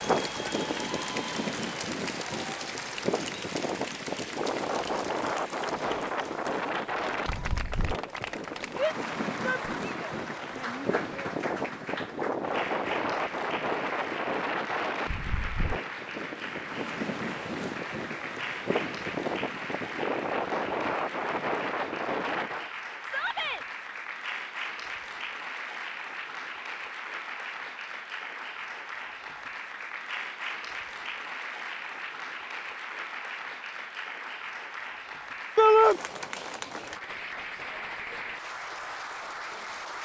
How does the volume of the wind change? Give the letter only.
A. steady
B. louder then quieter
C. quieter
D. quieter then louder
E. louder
A.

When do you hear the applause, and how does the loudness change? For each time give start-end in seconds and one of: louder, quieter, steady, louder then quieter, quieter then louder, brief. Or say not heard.
0.0-40.0 steady.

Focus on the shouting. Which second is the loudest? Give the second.
36 s.